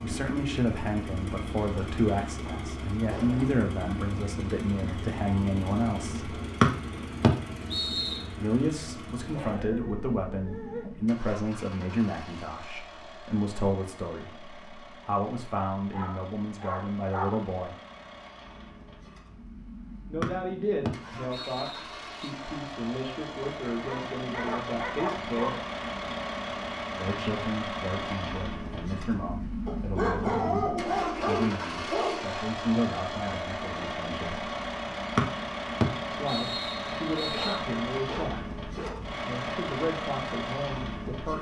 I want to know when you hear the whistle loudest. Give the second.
7 s.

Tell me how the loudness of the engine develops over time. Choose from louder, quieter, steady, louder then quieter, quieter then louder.
quieter then louder.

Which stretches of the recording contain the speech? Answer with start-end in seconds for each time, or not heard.
0.0-6.3, 8.3-17.8, 20.1-25.5, 26.9-34.5, 36.1-41.3.